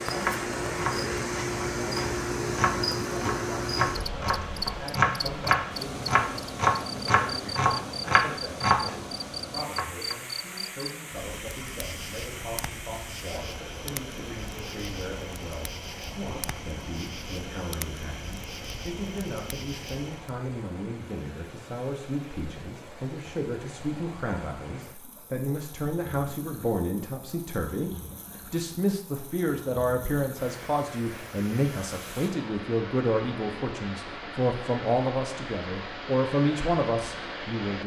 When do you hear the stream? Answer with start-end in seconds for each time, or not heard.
0.0-37.8.